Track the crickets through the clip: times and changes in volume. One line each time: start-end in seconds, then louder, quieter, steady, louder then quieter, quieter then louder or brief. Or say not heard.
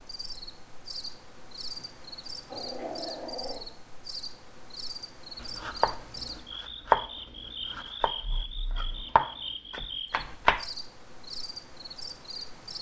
0.0-12.7 steady.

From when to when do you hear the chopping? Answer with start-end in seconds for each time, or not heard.
5.4-8.1, 8.8-10.7.